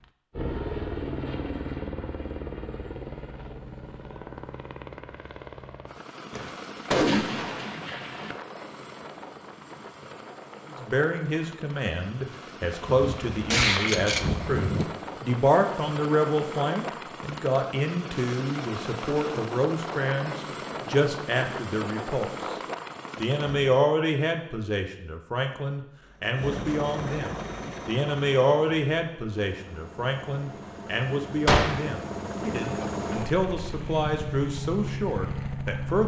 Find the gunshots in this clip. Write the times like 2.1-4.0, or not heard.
6.3-8.3, 12.8-14.8, 31.4-31.9.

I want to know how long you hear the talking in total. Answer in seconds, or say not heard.
25 s.